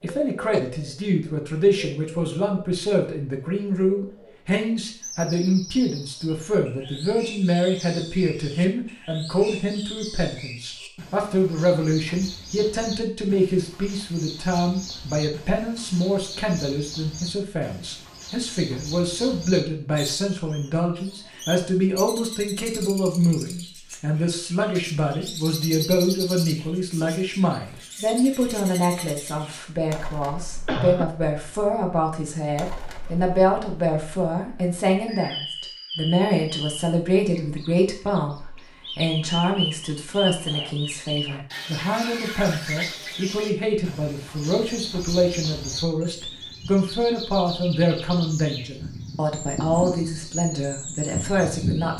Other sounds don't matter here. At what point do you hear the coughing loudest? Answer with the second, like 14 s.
31 s.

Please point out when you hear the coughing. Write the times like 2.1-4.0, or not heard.
0.1-0.7, 30.6-31.1, 40.5-41.5.